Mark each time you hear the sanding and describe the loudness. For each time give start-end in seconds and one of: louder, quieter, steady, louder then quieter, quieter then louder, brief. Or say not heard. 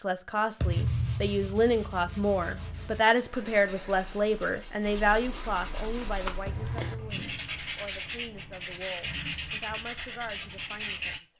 0.6-11.2 louder.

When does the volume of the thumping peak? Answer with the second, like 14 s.
1 s.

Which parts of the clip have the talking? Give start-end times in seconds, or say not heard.
0.0-11.3.